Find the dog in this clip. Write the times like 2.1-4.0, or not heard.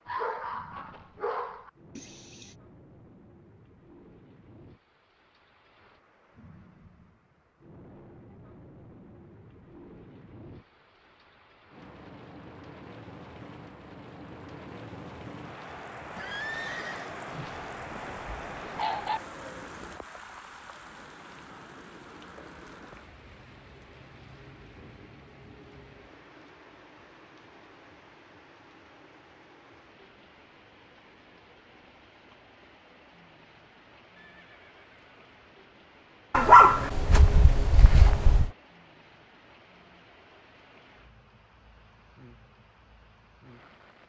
0.1-1.7, 17.3-19.2, 36.3-38.5.